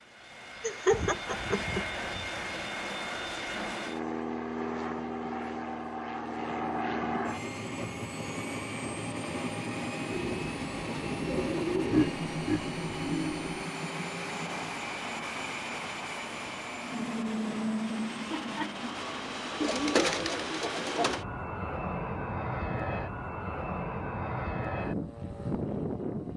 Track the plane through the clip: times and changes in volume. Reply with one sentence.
You can hear the plane from 0.0 to 26.3 s, at a steady volume.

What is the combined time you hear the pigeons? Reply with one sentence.
You can hear the pigeons for 5 seconds altogether.